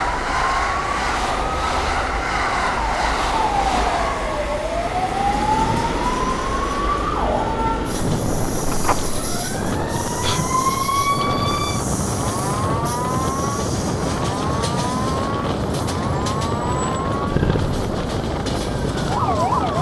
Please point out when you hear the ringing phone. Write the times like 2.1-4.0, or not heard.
8.7-9.4.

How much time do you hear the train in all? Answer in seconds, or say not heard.
20 s.